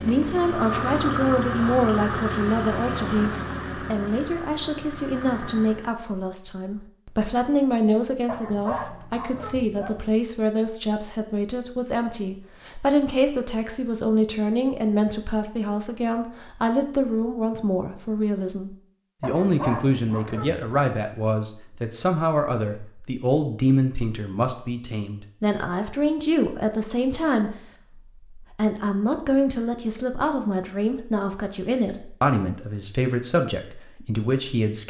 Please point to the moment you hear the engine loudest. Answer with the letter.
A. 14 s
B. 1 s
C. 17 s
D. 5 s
B.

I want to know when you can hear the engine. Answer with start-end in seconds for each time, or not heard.
0.0-5.9.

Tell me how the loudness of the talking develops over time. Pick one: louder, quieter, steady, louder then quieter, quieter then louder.
steady.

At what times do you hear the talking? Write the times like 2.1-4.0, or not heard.
0.0-27.6, 28.4-34.8.